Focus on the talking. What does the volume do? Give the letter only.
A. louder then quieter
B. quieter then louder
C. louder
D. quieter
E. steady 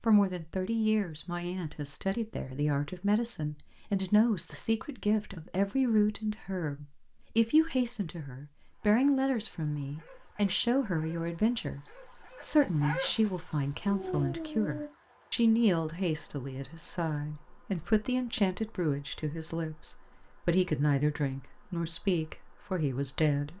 E.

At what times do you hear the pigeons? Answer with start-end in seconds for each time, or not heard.
not heard.